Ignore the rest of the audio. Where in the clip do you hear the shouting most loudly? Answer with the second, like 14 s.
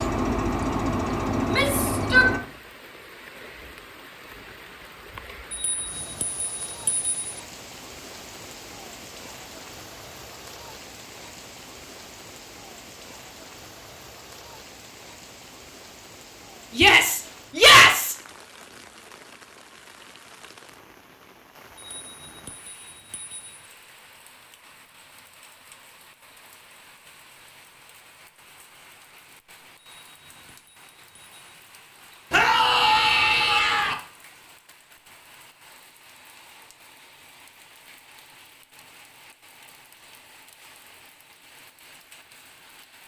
18 s.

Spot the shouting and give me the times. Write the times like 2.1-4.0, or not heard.
1.4-2.3, 16.8-18.1, 32.3-34.0.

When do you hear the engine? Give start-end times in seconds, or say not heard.
0.0-2.4.